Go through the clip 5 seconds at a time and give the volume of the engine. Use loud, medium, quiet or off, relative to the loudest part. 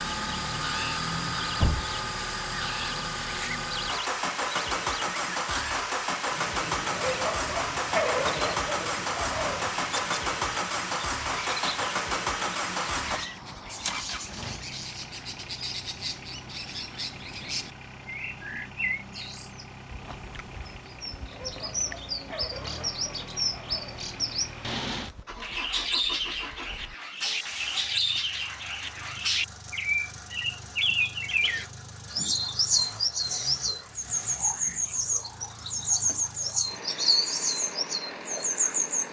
loud, loud, loud, quiet, medium, quiet, quiet, quiet.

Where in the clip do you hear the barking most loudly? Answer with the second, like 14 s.
8 s.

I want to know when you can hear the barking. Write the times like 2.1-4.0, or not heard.
6.9-9.7, 21.3-24.1.